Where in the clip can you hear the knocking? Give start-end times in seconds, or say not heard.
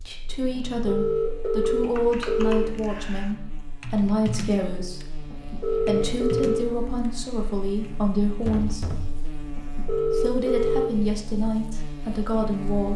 8.4-9.2.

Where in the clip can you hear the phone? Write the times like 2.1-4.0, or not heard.
0.6-2.7, 5.2-6.7, 9.4-10.9.